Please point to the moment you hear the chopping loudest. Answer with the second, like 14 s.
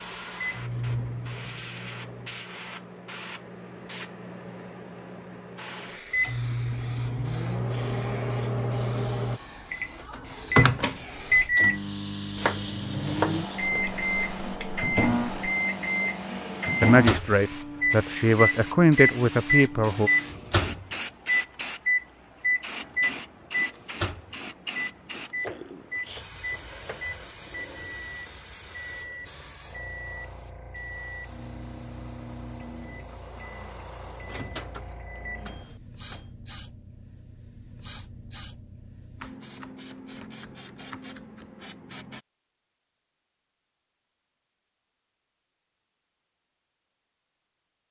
13 s.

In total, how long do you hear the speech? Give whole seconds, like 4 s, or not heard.
3 s.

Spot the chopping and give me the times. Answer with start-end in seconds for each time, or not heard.
12.3-14.0, 25.4-27.1, 39.2-41.6.